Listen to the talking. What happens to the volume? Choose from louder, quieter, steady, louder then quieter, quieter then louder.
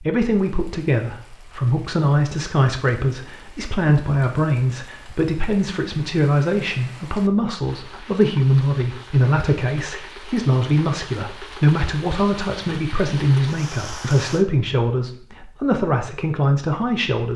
steady.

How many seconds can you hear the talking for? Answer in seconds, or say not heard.
17 s.